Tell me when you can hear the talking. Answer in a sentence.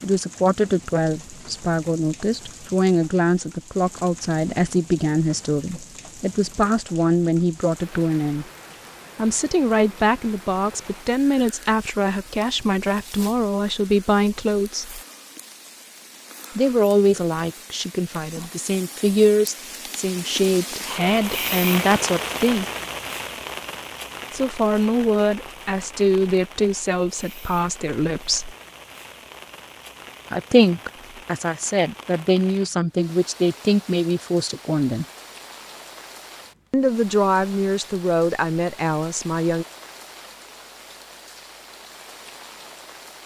You can hear the talking from 0.0 to 8.4 s, from 9.2 to 15.0 s, from 16.6 to 22.6 s, from 24.3 to 28.6 s, from 30.3 to 35.0 s and from 36.7 to 39.6 s.